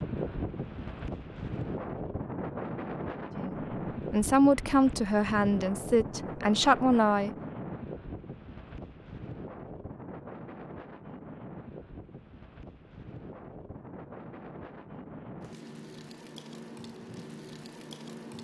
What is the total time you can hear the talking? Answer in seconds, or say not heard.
4 s.